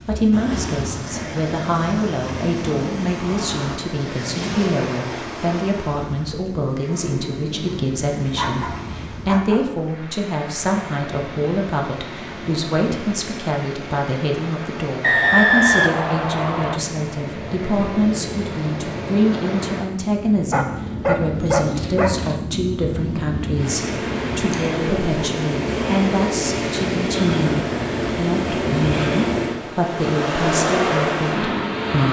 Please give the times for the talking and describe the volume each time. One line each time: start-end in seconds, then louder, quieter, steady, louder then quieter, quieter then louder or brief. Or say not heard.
0.1-32.0 steady.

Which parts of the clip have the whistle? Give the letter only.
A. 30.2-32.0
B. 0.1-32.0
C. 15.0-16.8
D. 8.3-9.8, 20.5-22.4
C.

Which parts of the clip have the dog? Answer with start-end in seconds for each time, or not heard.
8.3-9.8, 20.5-22.4.